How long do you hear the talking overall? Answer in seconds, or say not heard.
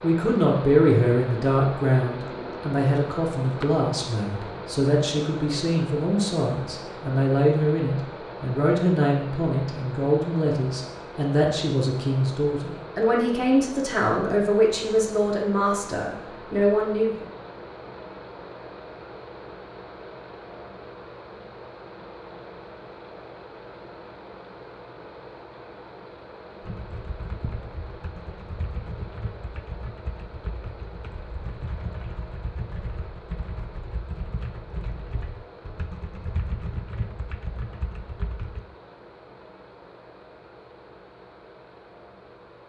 17 s.